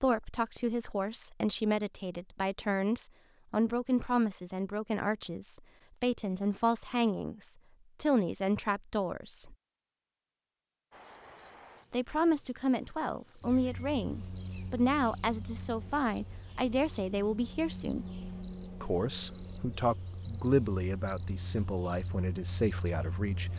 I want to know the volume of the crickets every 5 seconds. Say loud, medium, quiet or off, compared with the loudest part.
off, off, loud, loud, loud.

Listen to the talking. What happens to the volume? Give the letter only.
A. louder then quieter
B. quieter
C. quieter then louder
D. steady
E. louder
D.